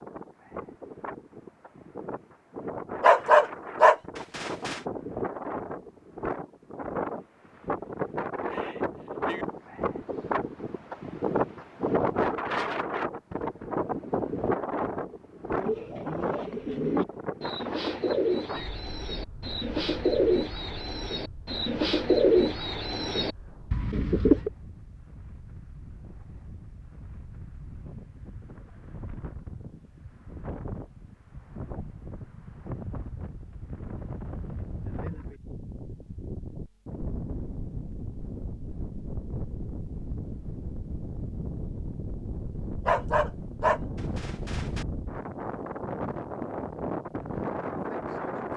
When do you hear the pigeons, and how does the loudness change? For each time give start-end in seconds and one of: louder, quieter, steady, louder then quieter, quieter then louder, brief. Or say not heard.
15.6-24.5 louder then quieter.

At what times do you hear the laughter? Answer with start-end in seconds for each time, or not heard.
not heard.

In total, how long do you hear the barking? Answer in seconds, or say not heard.
4 s.